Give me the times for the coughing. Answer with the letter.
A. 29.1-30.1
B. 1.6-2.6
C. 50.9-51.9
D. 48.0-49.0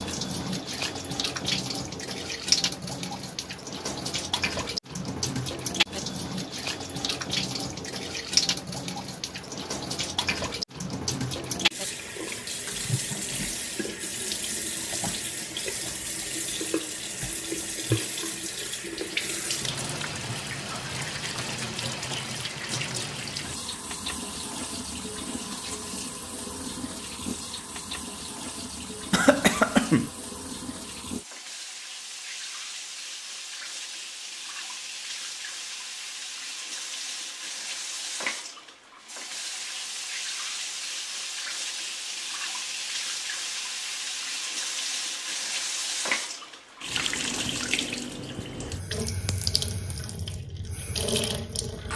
A.